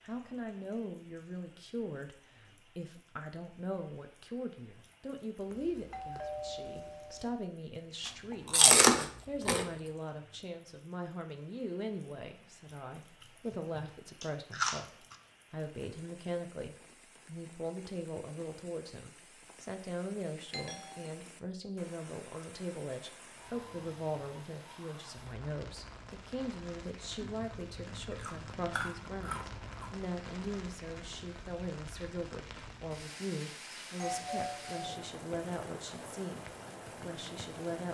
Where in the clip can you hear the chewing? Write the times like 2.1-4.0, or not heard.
8.1-9.7, 13.2-15.2, 27.2-30.0.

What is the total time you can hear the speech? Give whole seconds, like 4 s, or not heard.
38 s.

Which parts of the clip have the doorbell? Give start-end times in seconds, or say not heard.
5.5-7.3, 20.5-21.1, 34.0-34.9.